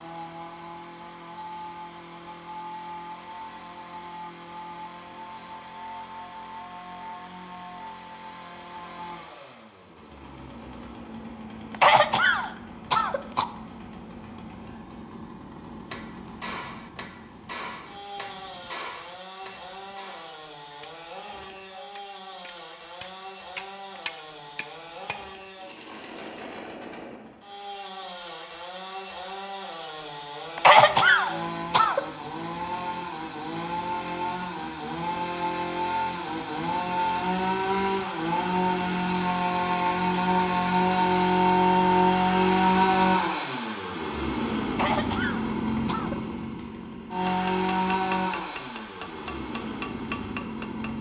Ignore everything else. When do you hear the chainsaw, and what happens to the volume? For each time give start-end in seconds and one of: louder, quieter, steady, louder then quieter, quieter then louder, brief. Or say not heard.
0.0-50.9 louder.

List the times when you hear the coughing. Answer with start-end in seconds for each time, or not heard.
11.7-13.4, 30.6-32.0, 44.7-46.1.